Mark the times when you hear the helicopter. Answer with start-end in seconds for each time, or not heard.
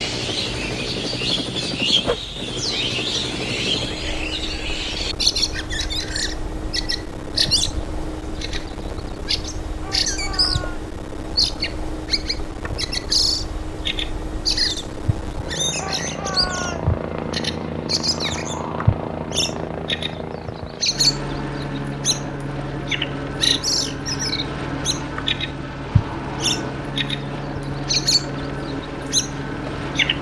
0.0-30.1.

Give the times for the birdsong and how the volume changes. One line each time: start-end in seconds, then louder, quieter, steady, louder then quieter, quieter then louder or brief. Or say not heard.
0.0-30.1 steady.